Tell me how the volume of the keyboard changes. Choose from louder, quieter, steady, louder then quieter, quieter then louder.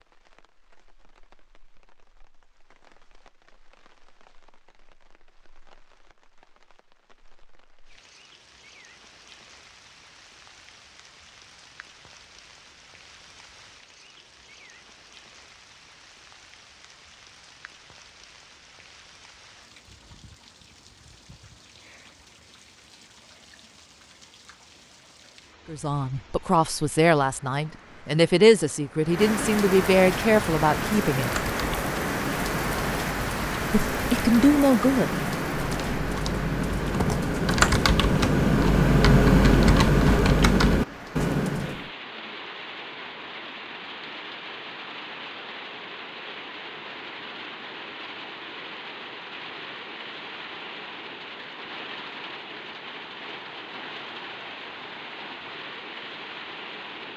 louder.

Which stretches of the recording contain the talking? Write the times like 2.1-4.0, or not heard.
25.7-31.4, 33.9-35.1.